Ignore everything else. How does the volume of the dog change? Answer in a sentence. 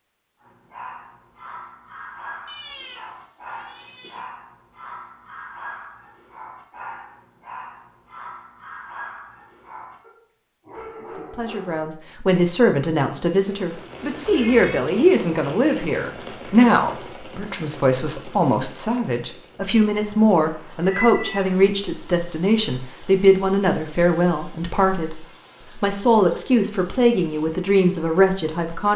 The volume of the dog stays about the same.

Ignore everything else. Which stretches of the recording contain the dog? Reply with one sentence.
The dog can be heard from 0.4 to 11.9 s.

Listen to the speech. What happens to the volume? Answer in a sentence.
The volume of the speech stays about the same.